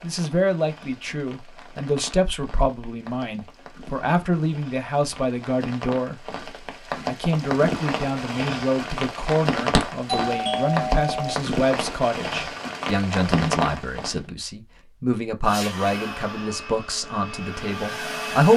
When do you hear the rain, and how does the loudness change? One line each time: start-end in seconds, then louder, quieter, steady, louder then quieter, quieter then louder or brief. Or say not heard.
0.0-14.2 louder.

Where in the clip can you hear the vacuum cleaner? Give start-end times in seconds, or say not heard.
15.4-18.5.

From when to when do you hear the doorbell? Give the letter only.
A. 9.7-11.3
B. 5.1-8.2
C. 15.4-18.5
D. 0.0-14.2
A.